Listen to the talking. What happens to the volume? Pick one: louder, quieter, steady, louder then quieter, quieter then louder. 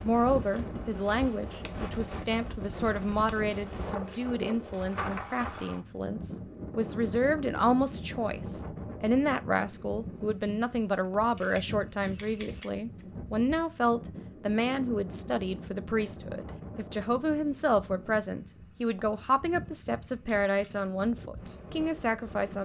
steady.